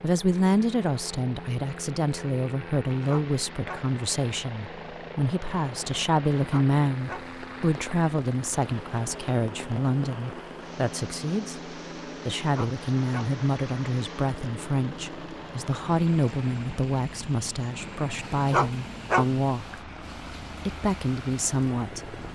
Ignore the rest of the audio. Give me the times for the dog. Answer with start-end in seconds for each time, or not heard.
3.0-3.9, 6.5-7.3, 12.5-13.3, 18.5-19.4.